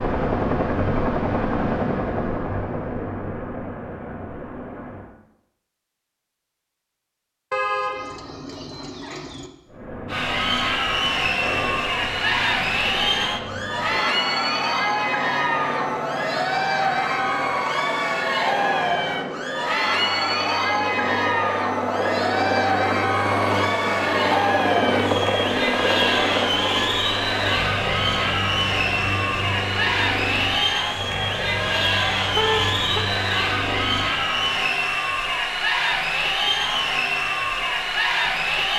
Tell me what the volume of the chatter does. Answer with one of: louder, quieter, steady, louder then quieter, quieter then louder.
steady.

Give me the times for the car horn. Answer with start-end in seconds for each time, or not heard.
7.5-9.5, 32.4-33.0.